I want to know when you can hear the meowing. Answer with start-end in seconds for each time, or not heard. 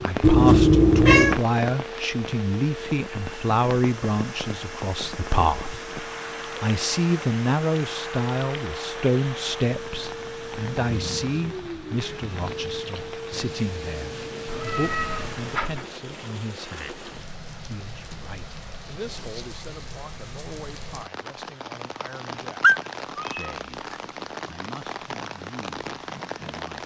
0.2-1.4, 14.4-15.9, 22.6-23.9.